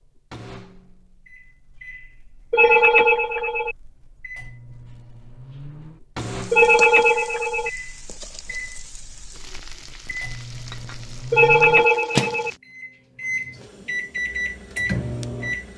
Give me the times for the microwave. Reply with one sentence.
The microwave can be heard from 0.0 to 15.7 s.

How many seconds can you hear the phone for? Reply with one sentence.
You can hear the phone for 4 seconds altogether.